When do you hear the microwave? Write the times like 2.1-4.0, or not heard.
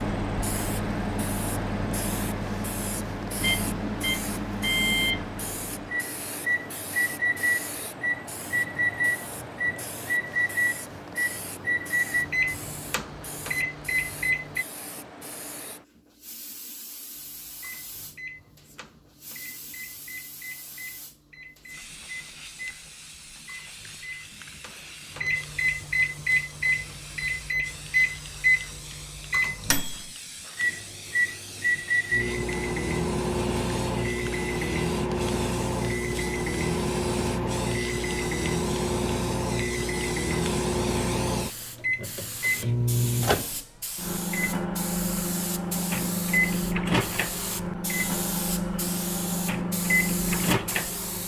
0.0-14.7, 17.1-51.2.